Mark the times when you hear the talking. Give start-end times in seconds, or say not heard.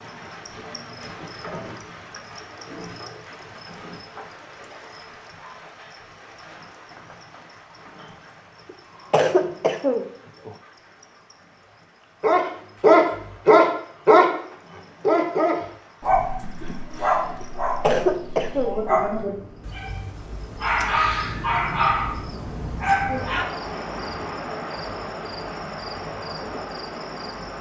not heard.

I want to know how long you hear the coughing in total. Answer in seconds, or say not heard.
3 s.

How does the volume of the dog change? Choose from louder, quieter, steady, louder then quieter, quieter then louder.
quieter.